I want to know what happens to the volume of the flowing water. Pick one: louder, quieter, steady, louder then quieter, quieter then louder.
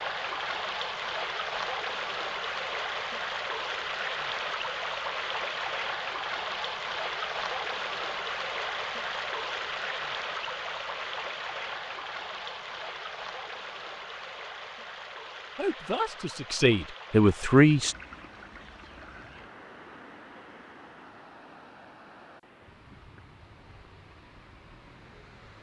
quieter.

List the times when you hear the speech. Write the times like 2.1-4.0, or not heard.
15.6-17.9.